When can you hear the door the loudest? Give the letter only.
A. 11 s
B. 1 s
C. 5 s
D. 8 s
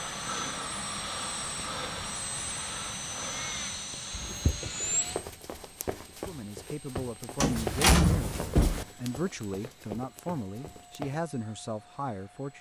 D.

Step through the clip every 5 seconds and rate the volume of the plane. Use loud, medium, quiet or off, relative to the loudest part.
loud, quiet, quiet.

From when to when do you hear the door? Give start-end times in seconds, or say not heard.
4.1-4.7, 7.3-8.8.